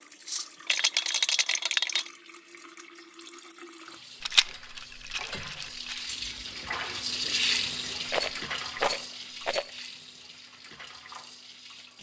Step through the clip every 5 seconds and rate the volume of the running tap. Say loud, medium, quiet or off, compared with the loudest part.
quiet, loud, quiet.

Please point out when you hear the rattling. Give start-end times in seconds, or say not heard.
0.7-2.1, 4.2-6.0, 8.1-9.7.